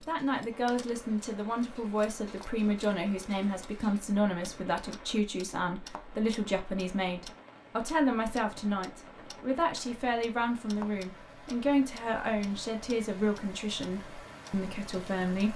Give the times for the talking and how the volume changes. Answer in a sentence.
The talking can be heard from 0.1 to 15.5 s, at a steady volume.